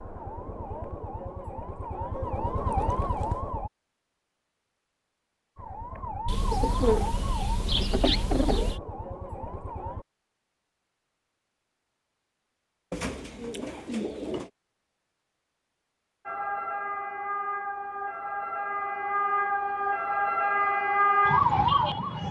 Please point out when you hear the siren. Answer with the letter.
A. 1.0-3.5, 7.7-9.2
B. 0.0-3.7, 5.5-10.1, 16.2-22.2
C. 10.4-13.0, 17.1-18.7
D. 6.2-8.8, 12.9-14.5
B.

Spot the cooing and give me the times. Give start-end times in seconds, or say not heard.
6.2-8.8, 12.9-14.5.